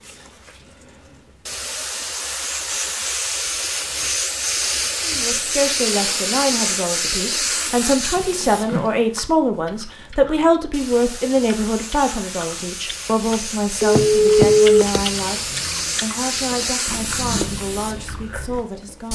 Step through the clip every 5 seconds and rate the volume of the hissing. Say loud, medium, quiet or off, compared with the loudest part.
loud, loud, medium, loud.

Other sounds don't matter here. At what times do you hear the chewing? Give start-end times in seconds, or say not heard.
8.2-18.6.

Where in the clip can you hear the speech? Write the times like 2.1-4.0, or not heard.
5.0-19.1.